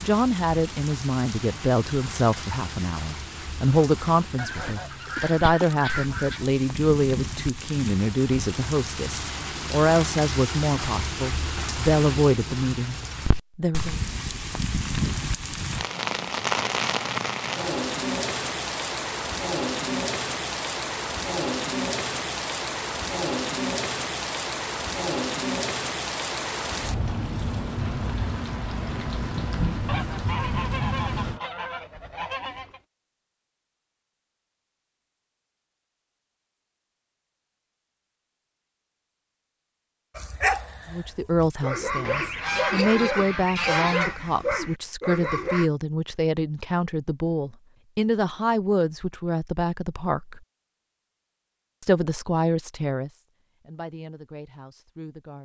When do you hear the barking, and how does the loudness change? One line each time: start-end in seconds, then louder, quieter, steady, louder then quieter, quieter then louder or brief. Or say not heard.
40.1-45.7 louder.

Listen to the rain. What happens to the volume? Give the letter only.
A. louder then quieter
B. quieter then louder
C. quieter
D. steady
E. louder
E.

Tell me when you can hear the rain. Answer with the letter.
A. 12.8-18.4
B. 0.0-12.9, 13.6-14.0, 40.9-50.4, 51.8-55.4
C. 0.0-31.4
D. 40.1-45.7
C.